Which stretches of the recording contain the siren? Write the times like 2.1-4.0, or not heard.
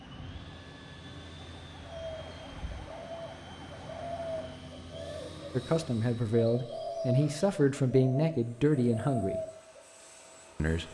0.0-4.7.